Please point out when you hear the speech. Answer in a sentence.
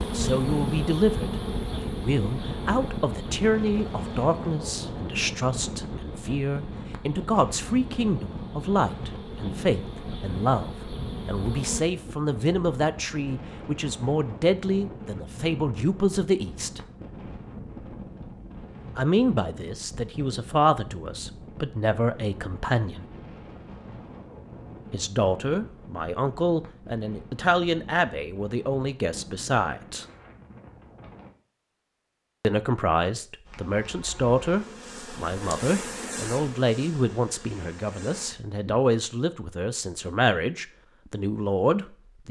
The speech can be heard from 0.0 to 16.8 s, from 18.9 to 23.1 s, from 24.9 to 30.1 s and from 32.4 to 42.2 s.